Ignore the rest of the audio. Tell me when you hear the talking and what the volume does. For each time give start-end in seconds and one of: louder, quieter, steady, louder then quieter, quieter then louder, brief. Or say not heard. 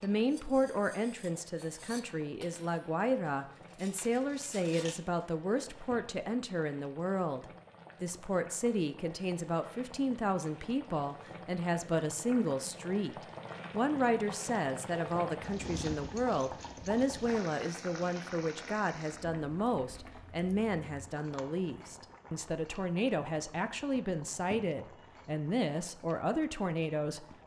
0.0-27.2 steady.